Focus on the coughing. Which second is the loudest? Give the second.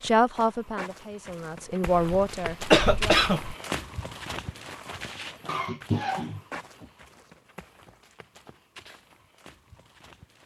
3 s.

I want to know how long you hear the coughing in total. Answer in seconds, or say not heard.
3 s.